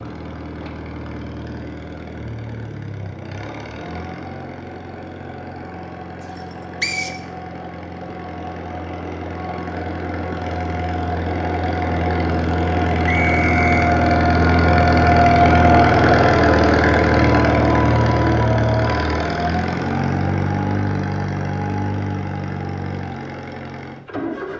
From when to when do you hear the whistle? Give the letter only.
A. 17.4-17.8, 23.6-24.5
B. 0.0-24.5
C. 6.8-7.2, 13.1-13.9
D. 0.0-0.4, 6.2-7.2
C.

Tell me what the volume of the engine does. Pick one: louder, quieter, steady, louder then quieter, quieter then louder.
louder then quieter.